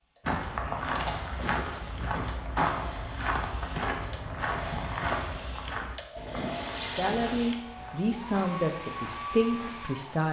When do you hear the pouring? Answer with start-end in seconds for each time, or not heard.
0.9-1.4, 6.2-7.5.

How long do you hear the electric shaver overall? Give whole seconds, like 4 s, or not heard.
not heard.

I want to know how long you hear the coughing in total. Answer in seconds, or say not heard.
2 s.